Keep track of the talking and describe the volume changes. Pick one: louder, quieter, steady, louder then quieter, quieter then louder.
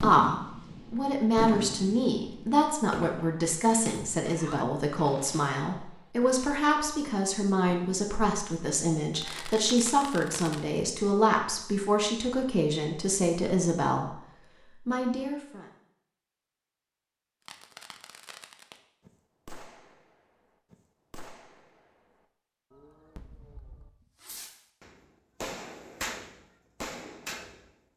steady.